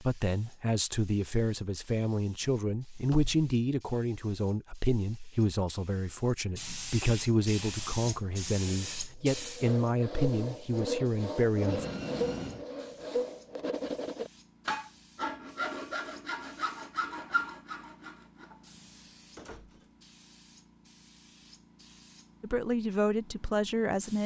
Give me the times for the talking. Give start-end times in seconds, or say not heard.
0.0-11.8, 22.4-24.2.